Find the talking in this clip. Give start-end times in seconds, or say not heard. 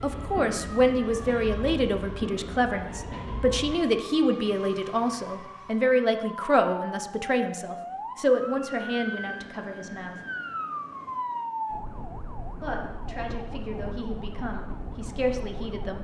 0.0-10.2, 12.6-15.9.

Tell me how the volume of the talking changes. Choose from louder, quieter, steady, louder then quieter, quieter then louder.
quieter.